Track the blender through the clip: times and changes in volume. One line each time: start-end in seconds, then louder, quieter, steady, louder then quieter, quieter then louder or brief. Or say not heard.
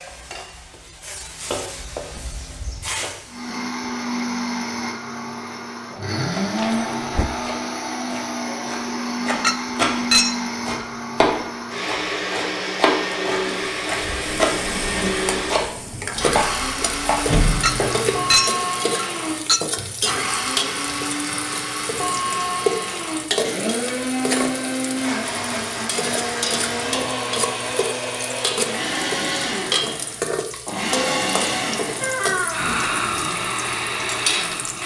3.2-34.8 steady.